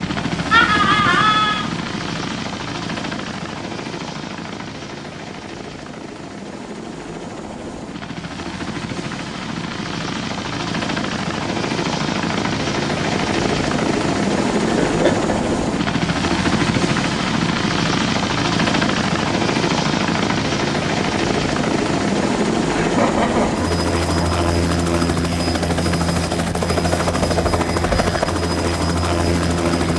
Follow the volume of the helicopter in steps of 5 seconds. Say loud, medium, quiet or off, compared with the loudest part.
medium, medium, loud, loud, loud, loud.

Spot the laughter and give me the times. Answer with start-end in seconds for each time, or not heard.
0.5-1.7, 14.7-15.3, 22.7-24.4.